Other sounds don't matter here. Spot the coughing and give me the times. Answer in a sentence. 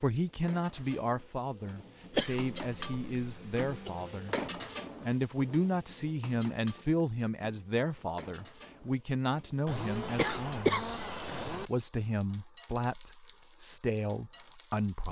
You can hear the coughing from 2.1 to 3.9 s and from 9.7 to 11.7 s.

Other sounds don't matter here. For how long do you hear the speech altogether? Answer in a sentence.
You can hear the speech for 14 seconds altogether.